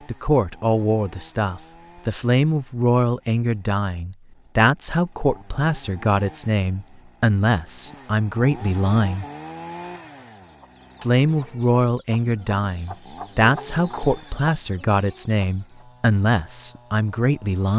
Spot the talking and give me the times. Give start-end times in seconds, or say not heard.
0.1-9.2, 11.0-17.7.